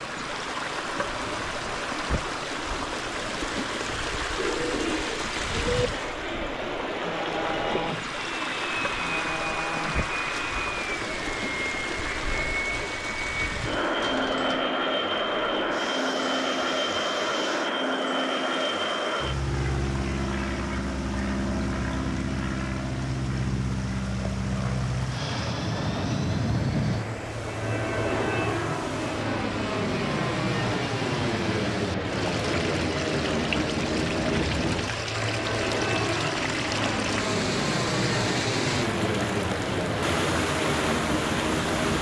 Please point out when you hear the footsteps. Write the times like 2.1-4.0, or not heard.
not heard.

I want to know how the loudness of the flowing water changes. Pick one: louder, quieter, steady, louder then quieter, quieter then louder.
quieter then louder.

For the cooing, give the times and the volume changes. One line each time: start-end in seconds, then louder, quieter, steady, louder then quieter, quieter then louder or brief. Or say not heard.
4.3-14.6 quieter.